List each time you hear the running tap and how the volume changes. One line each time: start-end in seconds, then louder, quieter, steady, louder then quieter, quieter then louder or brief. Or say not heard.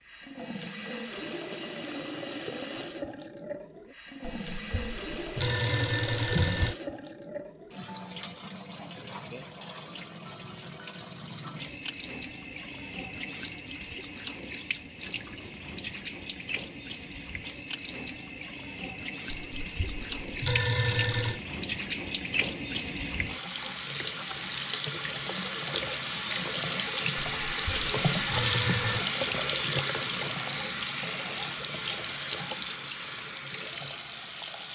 0.0-34.6 louder.